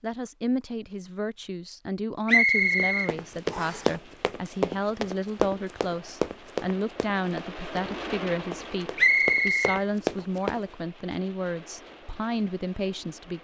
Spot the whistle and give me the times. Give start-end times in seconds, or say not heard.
2.2-3.9, 8.9-9.8.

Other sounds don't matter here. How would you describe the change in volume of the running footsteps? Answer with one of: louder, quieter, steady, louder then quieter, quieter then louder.
quieter then louder.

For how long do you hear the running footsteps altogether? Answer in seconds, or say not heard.
8 s.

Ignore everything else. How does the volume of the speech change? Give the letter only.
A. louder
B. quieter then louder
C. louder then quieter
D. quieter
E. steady
E.